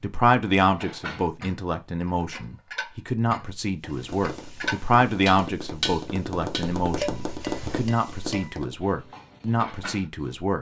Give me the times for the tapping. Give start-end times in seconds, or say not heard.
3.9-8.8.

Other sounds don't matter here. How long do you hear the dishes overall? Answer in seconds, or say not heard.
10 s.